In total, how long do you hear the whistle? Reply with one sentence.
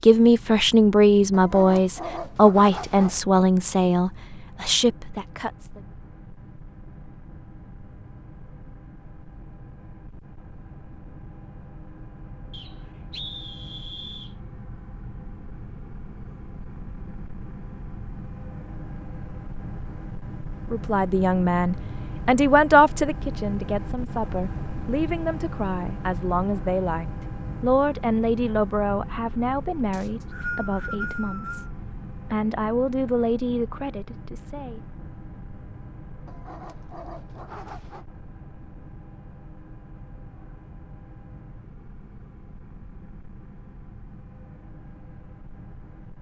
The whistle can be heard for 4 seconds in total.